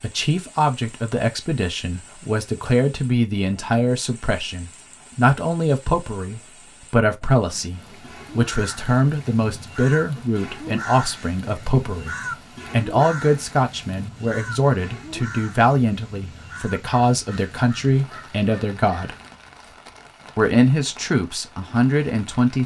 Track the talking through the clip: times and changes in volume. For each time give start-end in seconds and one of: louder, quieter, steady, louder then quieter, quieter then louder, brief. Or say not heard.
0.0-19.1 steady
20.4-22.6 brief.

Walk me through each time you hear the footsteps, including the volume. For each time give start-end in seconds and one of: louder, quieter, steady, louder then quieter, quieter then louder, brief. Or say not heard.
not heard.